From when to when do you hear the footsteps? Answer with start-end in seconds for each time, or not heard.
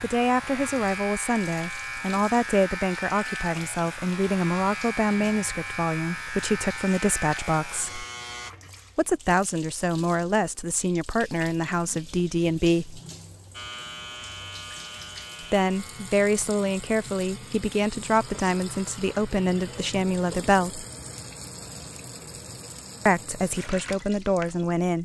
not heard.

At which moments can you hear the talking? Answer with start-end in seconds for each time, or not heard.
0.0-8.1, 8.9-13.0, 15.4-20.9, 23.1-25.0.